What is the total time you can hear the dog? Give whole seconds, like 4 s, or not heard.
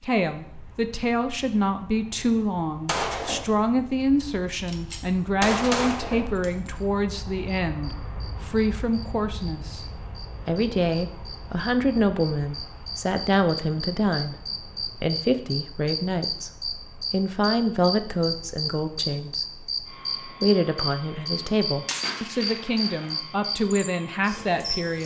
not heard.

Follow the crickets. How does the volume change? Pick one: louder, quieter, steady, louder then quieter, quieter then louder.
louder.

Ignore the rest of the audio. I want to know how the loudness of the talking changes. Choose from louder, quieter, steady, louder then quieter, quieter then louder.
steady.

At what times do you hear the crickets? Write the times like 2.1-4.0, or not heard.
6.8-25.0.